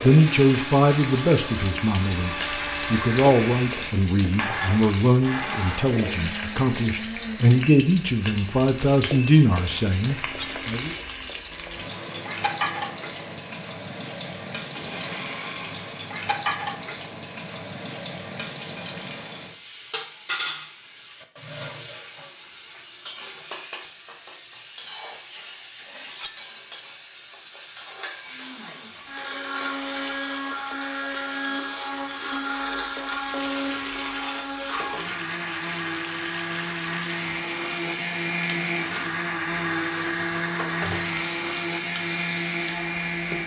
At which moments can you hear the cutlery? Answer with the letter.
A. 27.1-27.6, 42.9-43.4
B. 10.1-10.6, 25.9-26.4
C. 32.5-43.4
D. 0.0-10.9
B.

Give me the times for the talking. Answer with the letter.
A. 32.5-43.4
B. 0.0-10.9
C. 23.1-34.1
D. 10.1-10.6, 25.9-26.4
B.